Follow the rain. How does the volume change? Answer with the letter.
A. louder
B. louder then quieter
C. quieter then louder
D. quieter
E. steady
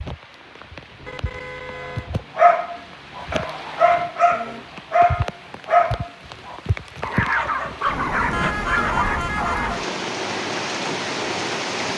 A.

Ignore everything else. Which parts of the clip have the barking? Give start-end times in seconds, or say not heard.
2.4-9.8.